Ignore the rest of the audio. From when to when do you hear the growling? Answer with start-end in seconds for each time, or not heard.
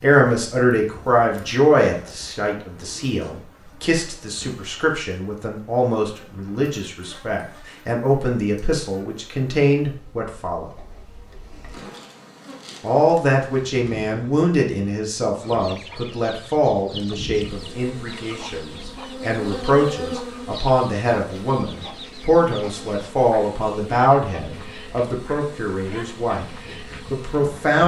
not heard.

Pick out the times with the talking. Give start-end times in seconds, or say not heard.
0.0-10.7, 12.8-27.8.